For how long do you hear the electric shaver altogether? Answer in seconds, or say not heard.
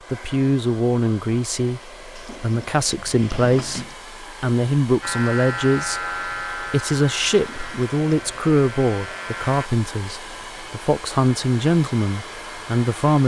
5 s.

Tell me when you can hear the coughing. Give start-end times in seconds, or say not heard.
not heard.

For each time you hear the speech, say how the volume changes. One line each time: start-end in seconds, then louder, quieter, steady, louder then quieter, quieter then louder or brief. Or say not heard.
0.1-13.2 steady.